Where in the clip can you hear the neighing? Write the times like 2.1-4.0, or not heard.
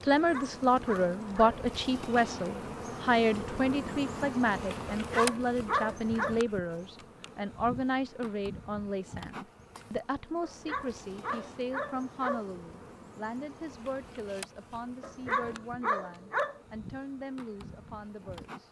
not heard.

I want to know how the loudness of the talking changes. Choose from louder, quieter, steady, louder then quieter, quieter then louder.
quieter.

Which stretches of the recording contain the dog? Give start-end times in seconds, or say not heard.
0.2-1.6, 4.9-6.3, 10.4-12.4, 15.0-16.6.